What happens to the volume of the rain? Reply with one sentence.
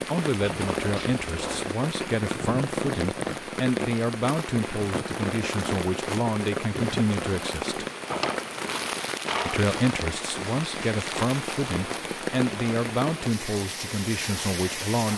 The loudness of the rain stays about the same.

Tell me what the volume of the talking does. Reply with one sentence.
The volume of the talking stays about the same.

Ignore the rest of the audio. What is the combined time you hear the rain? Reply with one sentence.
You can hear the rain for 15 seconds altogether.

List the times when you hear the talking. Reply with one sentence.
The talking can be heard from 0.1 to 7.8 s and from 9.4 to 15.1 s.